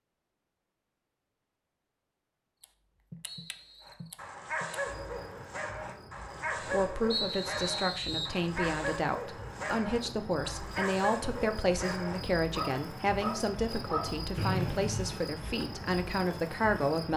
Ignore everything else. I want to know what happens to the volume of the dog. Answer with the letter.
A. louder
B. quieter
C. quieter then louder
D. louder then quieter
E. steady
E.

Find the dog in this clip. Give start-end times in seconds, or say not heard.
3.8-14.2.